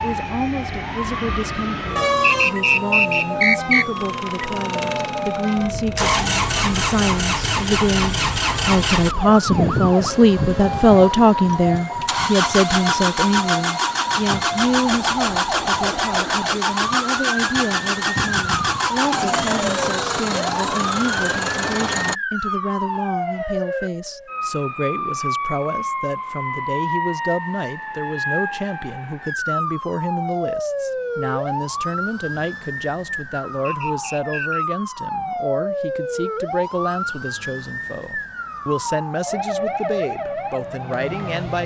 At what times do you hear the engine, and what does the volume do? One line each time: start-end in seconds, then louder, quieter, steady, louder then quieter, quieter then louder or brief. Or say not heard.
4.0-22.1 steady.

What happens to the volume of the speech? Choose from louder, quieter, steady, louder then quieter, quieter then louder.
louder then quieter.